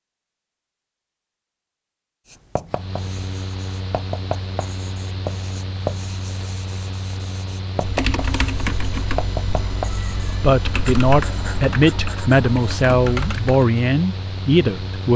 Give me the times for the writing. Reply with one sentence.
You can hear the writing from 2.2 to 12.8 s.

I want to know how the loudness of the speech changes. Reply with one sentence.
The loudness of the speech stays about the same.